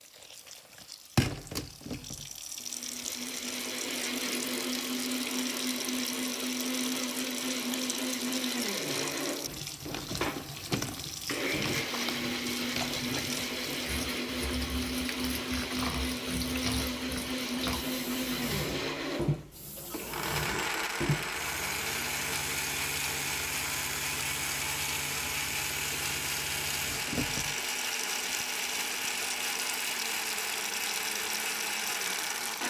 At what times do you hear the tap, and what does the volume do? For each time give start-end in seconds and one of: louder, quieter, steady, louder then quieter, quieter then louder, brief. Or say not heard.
0.0-32.6 steady.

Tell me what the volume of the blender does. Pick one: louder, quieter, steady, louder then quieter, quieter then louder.
steady.